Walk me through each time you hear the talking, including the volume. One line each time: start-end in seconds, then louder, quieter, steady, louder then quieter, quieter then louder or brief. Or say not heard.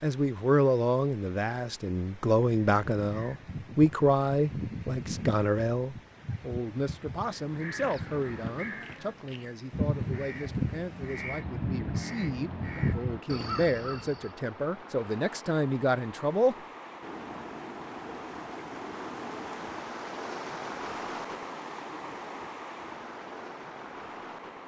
0.0-16.6 quieter then louder.